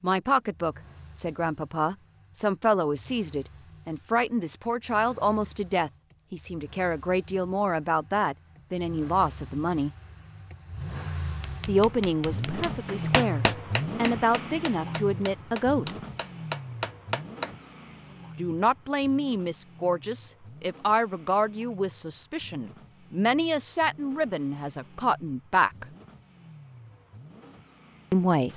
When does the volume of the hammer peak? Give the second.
13 s.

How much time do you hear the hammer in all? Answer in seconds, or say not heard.
6 s.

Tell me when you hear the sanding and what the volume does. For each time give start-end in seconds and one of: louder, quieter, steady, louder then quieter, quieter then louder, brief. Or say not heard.
not heard.